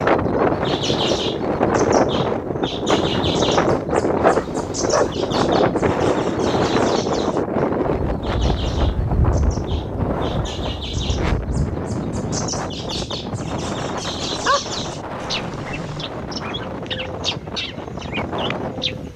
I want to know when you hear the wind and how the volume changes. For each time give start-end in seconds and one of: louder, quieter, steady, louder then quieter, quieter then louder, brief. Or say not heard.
0.0-19.1 quieter.